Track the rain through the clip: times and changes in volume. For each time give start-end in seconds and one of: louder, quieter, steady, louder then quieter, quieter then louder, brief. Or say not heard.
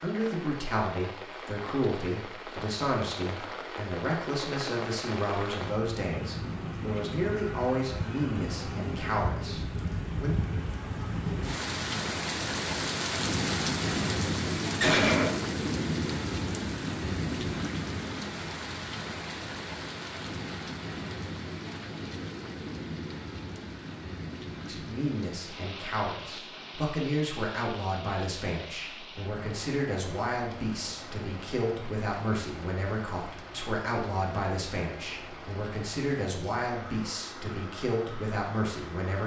0.0-39.2 louder then quieter.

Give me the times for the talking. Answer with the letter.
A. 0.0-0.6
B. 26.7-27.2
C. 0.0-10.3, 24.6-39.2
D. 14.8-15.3
C.